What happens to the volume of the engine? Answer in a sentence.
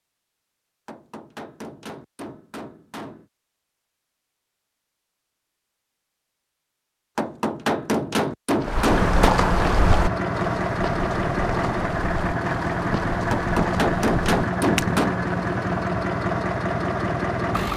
The loudness of the engine stays about the same.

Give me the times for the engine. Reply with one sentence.
The engine can be heard from 8.8 to 17.7 s.